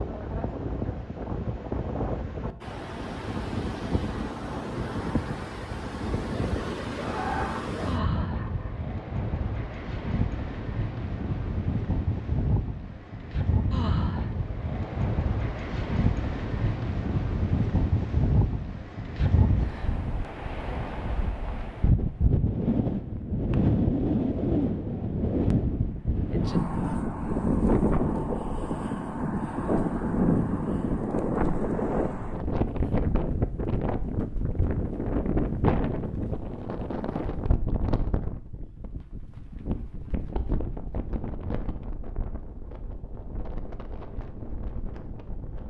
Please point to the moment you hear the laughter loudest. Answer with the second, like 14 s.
7 s.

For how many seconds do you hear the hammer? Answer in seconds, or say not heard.
not heard.